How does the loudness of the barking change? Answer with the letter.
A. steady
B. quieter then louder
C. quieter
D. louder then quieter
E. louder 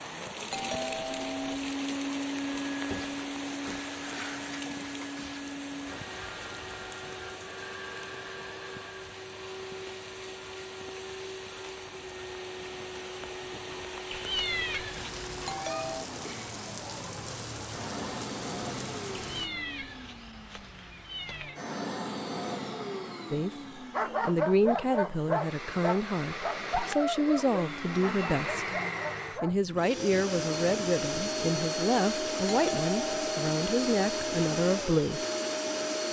C.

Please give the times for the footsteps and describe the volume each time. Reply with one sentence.
You can't hear the footsteps here.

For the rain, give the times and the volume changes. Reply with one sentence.
The rain can be heard from 0.0 to 19.5 s, getting quieter then louder.